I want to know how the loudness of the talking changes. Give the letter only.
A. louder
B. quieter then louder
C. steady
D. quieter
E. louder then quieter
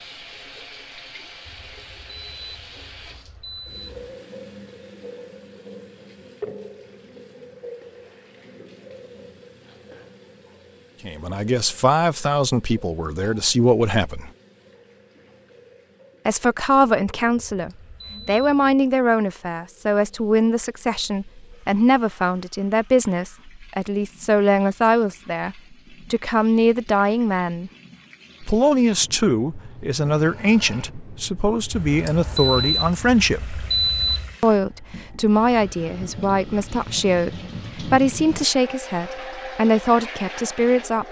C.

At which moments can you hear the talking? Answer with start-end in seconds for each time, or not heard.
11.0-14.3, 16.2-27.7, 28.4-33.6, 34.4-41.0.